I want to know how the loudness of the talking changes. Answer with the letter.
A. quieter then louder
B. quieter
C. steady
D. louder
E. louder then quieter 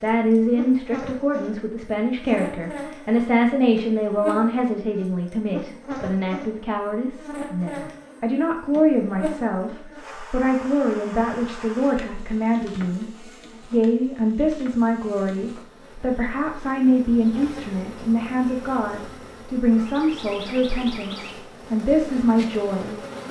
C.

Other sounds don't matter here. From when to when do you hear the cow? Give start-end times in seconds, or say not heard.
not heard.